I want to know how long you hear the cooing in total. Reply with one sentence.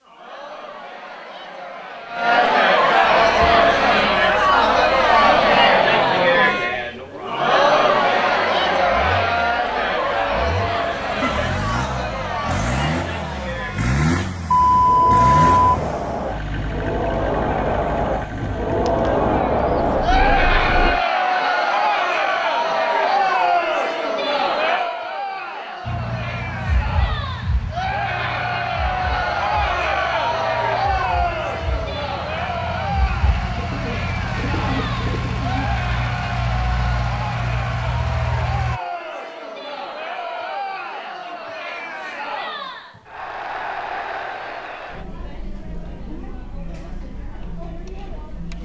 The cooing can be heard for 6 seconds in total.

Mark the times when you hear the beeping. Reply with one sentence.
You can hear the beeping from 14.5 to 15.9 s.